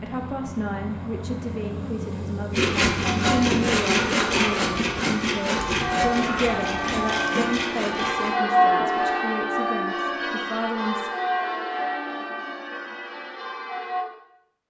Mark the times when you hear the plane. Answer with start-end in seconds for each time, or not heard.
0.0-3.9.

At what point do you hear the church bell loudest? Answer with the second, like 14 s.
9 s.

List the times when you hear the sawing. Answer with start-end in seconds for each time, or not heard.
2.5-8.3.